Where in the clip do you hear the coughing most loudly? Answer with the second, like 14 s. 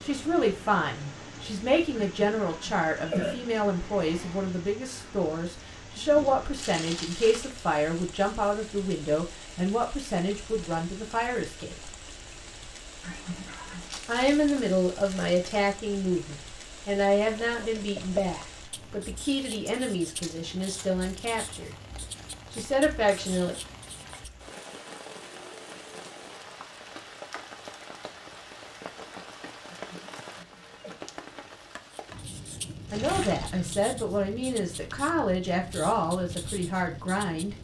3 s.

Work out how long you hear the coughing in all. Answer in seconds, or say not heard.
4 s.